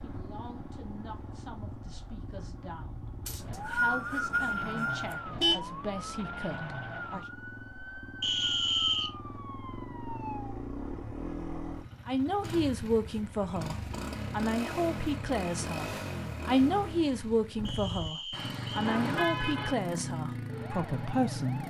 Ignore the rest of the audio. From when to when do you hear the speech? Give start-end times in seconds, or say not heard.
0.0-7.2, 12.1-21.6.